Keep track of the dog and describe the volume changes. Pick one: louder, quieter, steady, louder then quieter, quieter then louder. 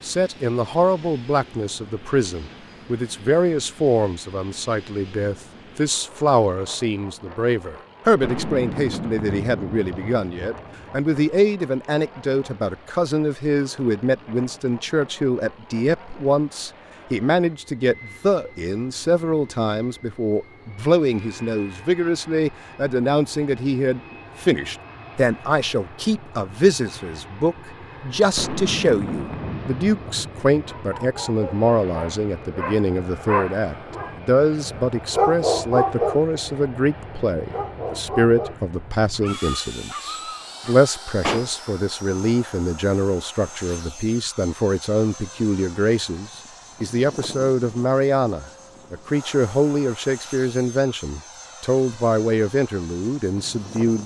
louder then quieter.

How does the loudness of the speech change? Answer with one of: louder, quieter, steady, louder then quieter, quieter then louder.
steady.